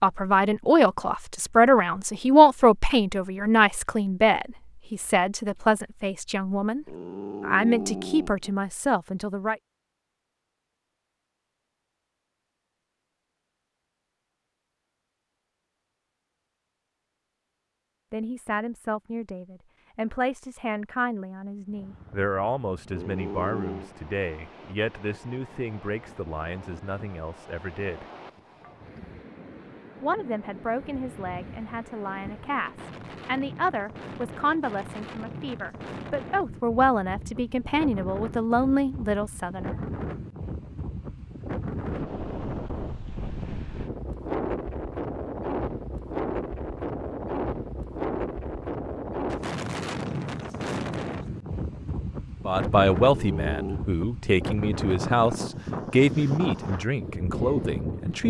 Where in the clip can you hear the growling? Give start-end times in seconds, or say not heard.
6.8-8.5, 22.9-23.9, 53.0-53.8.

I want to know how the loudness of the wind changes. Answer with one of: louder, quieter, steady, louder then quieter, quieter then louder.
louder.